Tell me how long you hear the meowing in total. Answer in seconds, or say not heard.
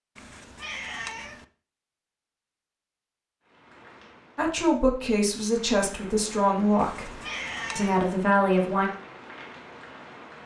3 s.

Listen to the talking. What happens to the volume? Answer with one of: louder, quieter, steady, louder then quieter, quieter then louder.
quieter then louder.